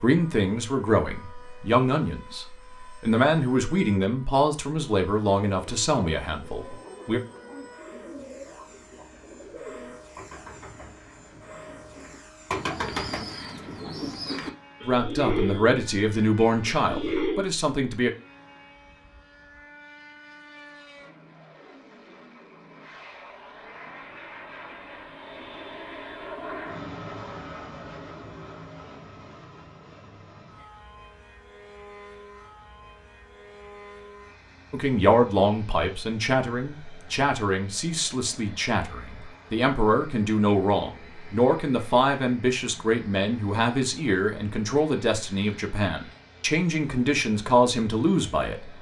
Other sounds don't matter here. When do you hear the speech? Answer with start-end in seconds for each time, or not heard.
0.0-7.2, 14.8-18.1, 34.7-48.6.